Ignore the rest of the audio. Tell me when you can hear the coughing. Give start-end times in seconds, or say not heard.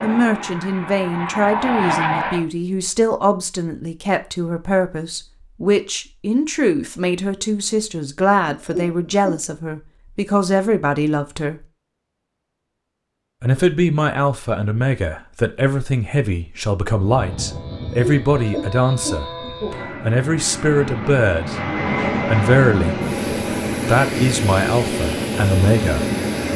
8.4-9.4, 17.9-19.9.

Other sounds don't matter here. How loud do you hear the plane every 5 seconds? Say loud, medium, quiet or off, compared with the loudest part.
loud, off, off, medium, loud, loud.